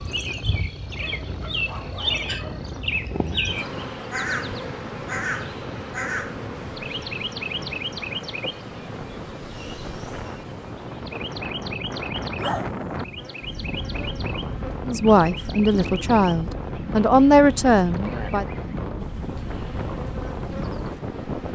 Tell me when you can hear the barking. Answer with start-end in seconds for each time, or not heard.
0.9-2.7, 12.3-13.7.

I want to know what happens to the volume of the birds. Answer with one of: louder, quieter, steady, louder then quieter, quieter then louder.
quieter.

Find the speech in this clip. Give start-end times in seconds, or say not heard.
14.8-18.4.